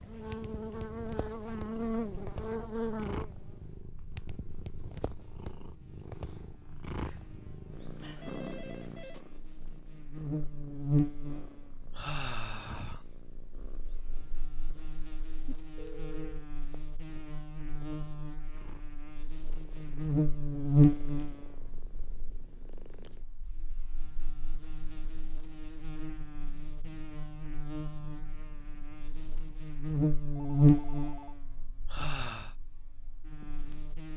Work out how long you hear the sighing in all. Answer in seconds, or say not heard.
2 s.